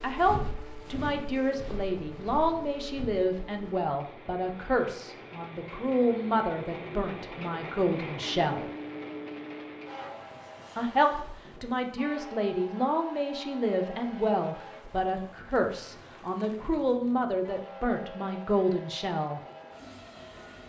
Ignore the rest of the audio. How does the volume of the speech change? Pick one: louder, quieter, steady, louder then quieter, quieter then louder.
steady.